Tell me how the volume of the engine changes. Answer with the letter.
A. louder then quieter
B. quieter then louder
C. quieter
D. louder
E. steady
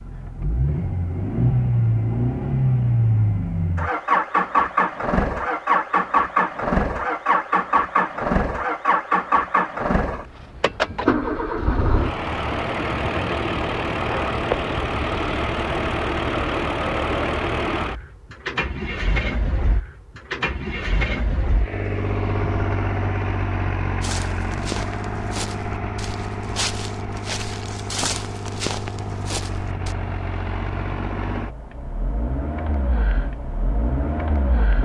C.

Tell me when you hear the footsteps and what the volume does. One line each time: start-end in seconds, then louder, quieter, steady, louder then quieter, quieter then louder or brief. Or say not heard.
24.0-29.9 quieter then louder.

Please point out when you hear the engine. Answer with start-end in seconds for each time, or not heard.
0.0-34.7.